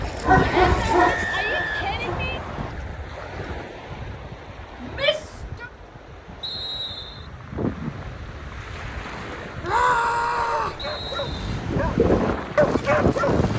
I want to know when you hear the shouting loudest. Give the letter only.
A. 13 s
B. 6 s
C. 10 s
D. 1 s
C.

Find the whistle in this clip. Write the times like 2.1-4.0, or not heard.
1.0-2.8, 6.4-7.3, 10.8-11.7.